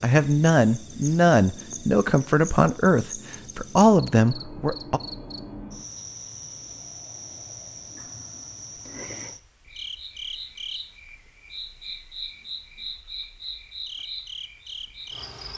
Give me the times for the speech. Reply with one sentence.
The speech can be heard from 0.0 to 5.0 s.